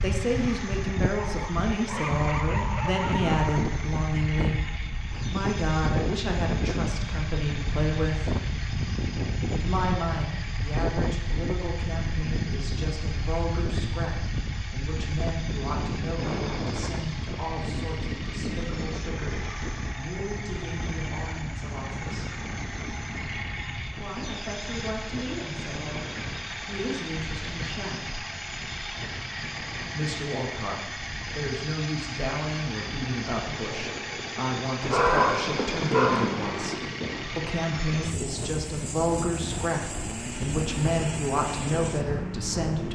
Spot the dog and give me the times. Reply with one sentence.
You can hear the dog from 1.3 to 3.8 s and from 34.8 to 36.8 s.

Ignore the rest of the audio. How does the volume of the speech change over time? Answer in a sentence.
The loudness of the speech goes down, then up.